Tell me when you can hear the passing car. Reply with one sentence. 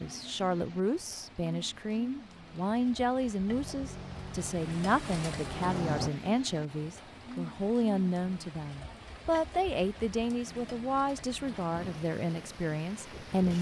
The passing car can be heard from 3.5 to 6.1 s.